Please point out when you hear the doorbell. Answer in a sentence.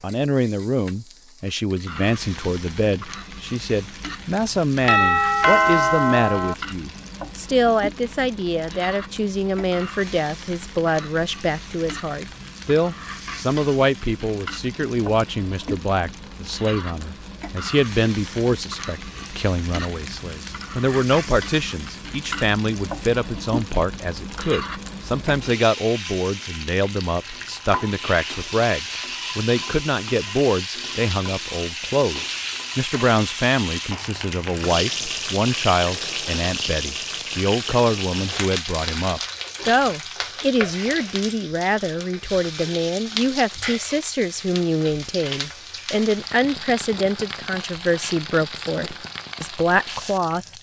You can hear the doorbell from 4.8 to 6.5 s.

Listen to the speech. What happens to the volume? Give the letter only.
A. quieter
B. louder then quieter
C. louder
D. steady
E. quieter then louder
D.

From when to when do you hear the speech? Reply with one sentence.
The speech can be heard from 0.0 to 50.5 s.